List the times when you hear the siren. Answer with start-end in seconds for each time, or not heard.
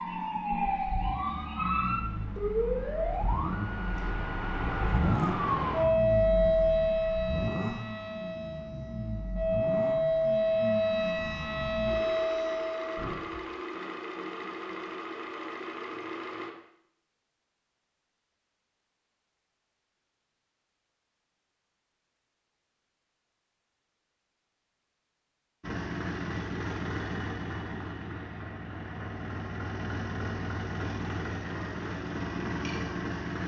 0.0-13.2.